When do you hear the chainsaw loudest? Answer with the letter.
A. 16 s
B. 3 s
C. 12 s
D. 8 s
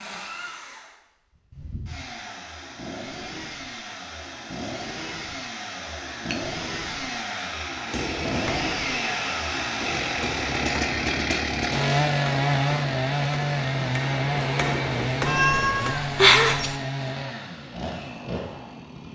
C.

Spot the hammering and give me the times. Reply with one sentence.
You can hear the hammering from 7.8 to 16.0 s.